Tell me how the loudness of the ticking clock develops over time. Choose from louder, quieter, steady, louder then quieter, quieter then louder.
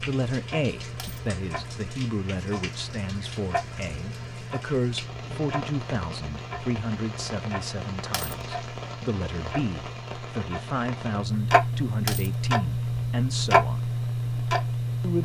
louder.